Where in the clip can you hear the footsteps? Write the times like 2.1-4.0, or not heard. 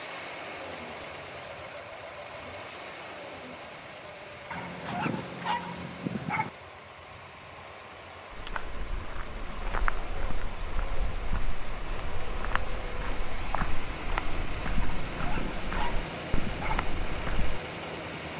8.3-17.6.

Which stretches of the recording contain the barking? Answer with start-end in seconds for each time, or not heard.
4.5-6.5, 14.8-16.9.